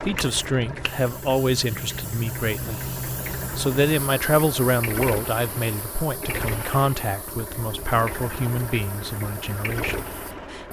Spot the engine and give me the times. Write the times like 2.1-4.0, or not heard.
0.0-10.6.